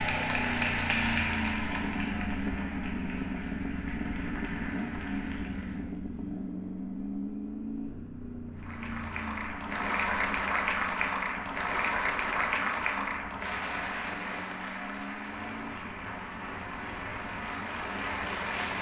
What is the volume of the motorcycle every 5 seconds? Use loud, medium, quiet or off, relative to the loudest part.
loud, loud, medium, medium.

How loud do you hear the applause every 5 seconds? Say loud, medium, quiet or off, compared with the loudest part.
loud, medium, loud, medium.